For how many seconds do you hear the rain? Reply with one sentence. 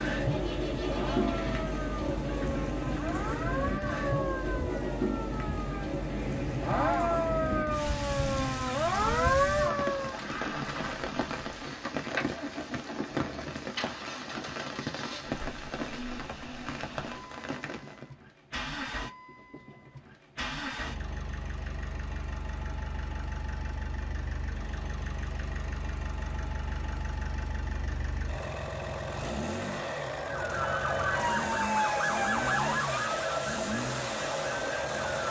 You can hear the rain for 18 seconds altogether.